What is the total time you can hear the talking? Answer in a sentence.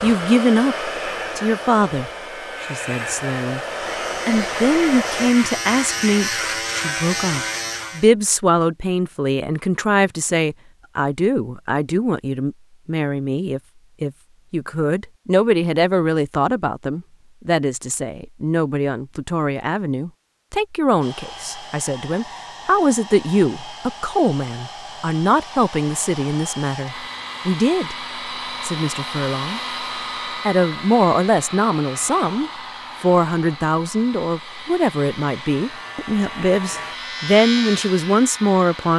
You can hear the talking for 37 seconds altogether.